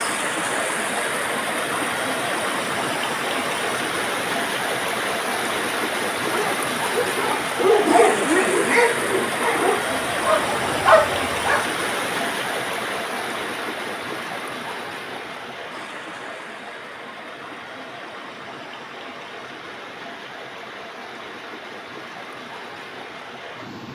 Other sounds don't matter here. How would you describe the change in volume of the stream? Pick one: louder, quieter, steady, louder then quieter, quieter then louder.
quieter.